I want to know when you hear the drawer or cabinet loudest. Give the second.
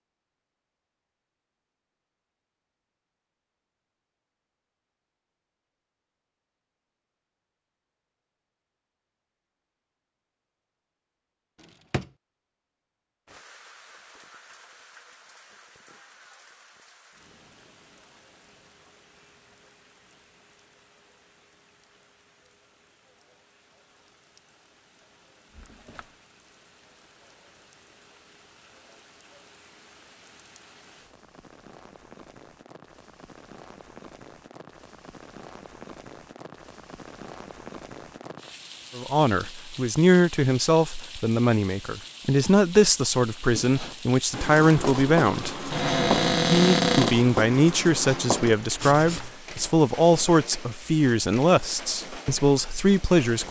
47 s.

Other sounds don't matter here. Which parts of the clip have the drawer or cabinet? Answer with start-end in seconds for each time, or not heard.
11.6-12.1, 25.5-26.1, 45.7-47.1.